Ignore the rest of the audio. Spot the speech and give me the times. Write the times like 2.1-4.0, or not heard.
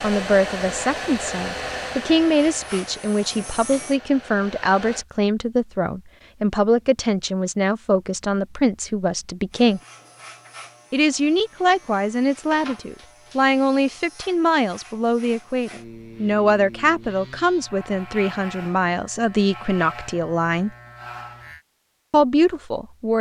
0.0-9.8, 10.9-20.7, 22.1-23.1.